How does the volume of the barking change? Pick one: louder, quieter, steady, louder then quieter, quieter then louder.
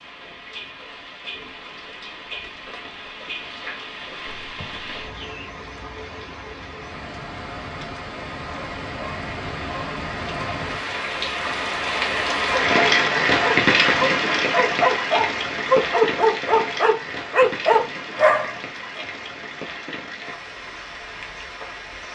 louder.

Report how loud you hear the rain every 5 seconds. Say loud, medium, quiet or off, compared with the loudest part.
quiet, quiet, loud, medium, quiet.